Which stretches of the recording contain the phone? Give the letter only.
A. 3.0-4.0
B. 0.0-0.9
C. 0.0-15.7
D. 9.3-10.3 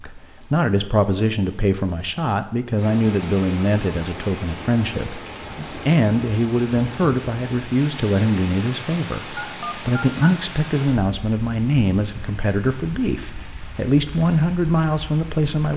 D.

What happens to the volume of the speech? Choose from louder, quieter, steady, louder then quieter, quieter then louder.
steady.